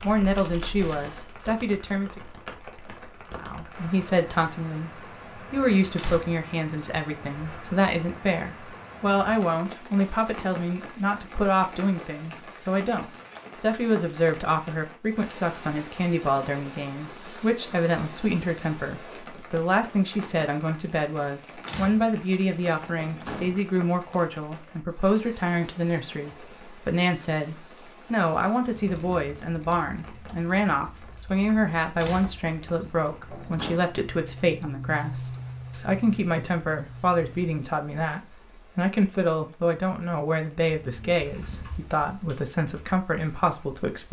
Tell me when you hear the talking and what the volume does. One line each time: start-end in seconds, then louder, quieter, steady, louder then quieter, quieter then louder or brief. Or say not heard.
0.0-2.2 brief
3.4-44.0 steady.